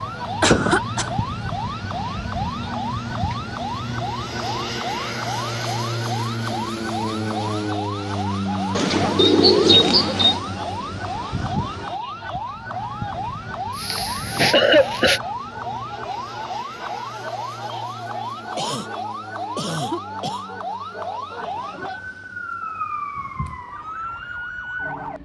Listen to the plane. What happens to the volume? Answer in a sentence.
The volume of the plane goes down.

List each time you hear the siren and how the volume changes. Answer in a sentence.
You can hear the siren from 0.0 to 25.2 s, at a steady volume.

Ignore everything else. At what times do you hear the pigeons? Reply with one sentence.
You can hear the pigeons from 8.8 to 10.4 s.